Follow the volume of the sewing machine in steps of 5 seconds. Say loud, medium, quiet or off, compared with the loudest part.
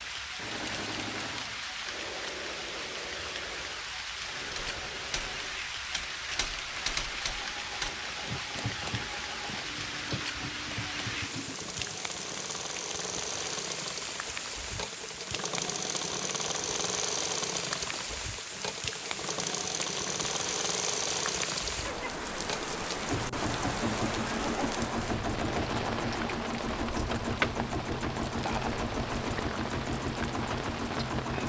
medium, quiet, medium, loud, loud, loud, loud.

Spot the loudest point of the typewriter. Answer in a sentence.
The loudest moment of the typewriter is at 7 seconds.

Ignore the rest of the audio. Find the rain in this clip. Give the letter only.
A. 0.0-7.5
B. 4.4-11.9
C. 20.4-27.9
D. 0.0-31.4
D.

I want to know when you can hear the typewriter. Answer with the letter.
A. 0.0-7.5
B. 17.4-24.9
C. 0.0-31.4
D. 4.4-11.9
D.